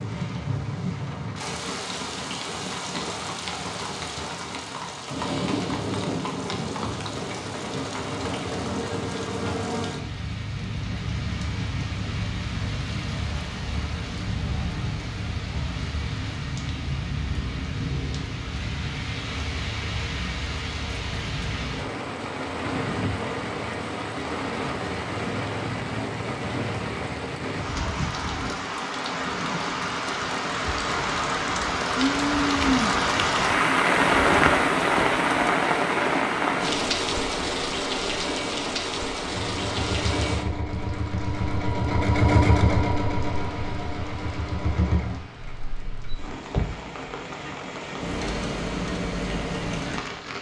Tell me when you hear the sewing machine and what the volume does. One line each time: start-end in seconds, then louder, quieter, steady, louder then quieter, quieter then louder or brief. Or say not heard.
39.3-46.1 louder then quieter.